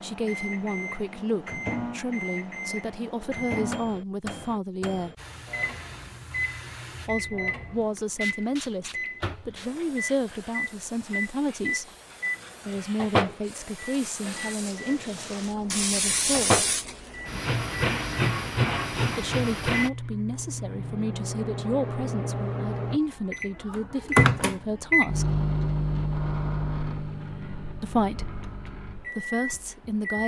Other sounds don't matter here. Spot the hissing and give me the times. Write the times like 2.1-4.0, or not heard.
5.2-19.9.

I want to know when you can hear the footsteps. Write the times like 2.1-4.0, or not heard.
not heard.